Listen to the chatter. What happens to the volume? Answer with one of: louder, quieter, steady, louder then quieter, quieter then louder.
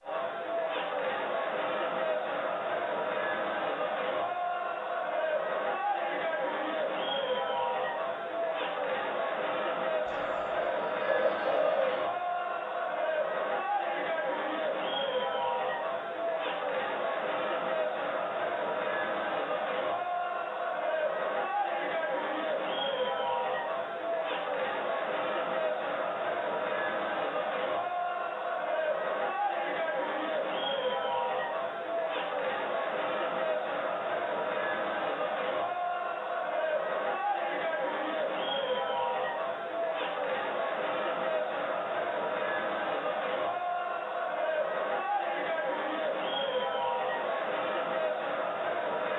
steady.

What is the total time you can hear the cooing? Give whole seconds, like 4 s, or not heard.
2 s.